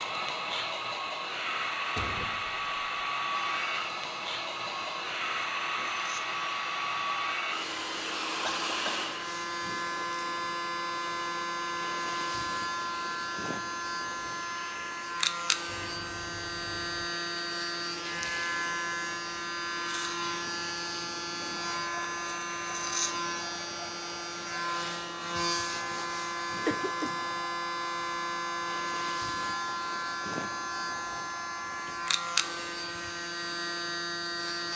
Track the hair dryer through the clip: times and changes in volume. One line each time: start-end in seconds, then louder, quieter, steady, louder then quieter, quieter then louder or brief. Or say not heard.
0.0-34.7 quieter.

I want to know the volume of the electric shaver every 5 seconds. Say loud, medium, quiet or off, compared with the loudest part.
quiet, medium, loud, loud, loud, loud, loud.